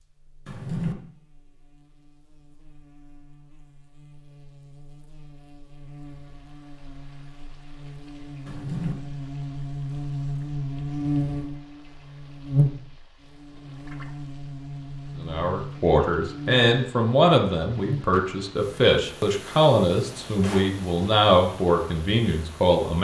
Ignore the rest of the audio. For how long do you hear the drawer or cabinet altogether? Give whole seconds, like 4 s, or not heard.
2 s.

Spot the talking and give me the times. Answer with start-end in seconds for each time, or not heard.
15.2-22.9.